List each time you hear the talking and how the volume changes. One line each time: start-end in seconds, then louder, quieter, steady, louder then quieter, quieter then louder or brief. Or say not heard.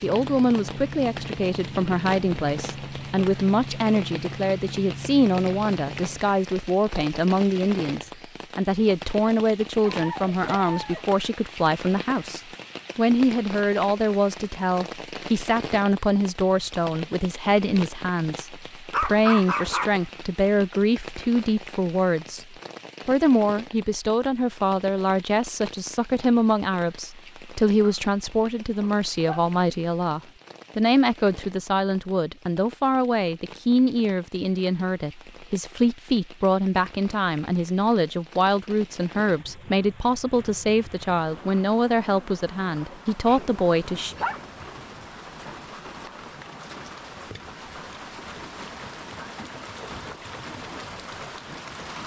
0.0-44.1 steady.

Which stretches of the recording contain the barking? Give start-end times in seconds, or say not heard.
9.8-11.1, 18.9-19.9, 27.8-29.4, 43.2-45.0.